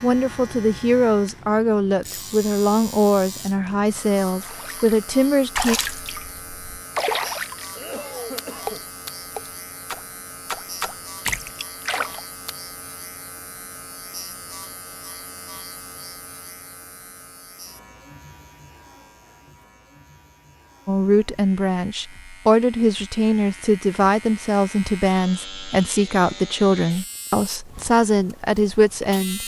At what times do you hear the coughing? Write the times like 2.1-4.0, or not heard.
7.8-8.8.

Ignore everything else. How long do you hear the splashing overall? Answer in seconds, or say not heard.
8 s.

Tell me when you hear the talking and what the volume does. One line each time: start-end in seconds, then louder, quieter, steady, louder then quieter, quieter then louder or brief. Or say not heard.
0.0-5.8 steady
20.9-29.4 steady.